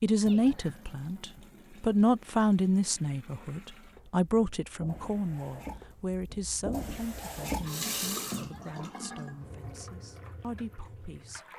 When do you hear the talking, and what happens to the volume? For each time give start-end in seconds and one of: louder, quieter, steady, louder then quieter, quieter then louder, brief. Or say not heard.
0.0-11.4 quieter.